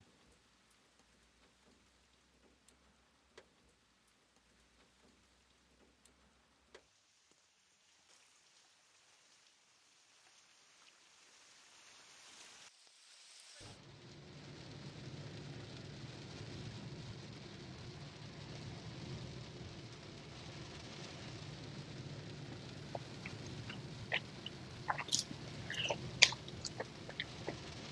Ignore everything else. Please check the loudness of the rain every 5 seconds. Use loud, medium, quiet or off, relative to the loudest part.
quiet, quiet, medium, loud, loud, loud.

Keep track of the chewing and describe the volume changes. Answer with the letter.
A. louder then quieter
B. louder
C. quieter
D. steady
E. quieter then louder
A.